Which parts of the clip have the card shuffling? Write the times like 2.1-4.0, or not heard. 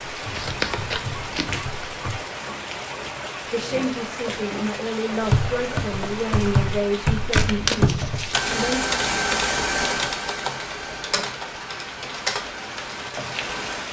0.3-1.7, 7.3-8.4.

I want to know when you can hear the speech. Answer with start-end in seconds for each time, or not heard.
3.5-8.8.